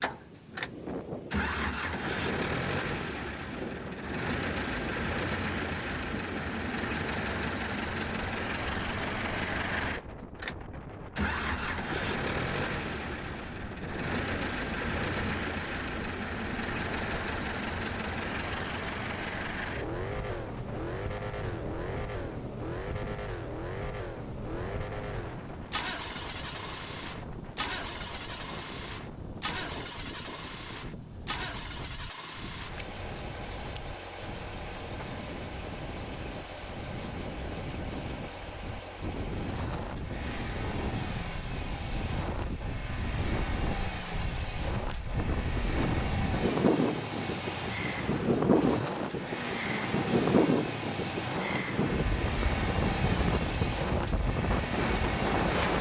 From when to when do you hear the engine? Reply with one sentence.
You can hear the engine from 0.0 to 55.7 s.